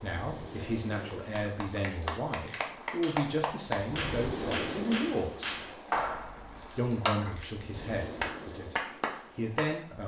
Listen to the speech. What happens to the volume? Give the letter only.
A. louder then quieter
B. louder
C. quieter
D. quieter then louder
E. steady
E.